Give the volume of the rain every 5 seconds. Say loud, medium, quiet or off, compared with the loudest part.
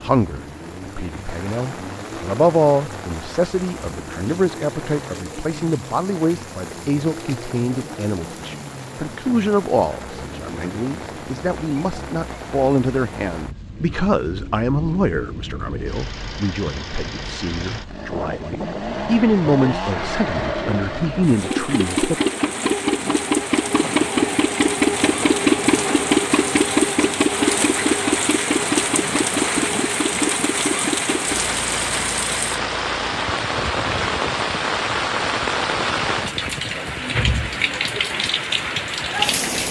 quiet, quiet, quiet, quiet, medium, loud, loud, loud.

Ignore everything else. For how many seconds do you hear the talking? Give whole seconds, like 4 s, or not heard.
22 s.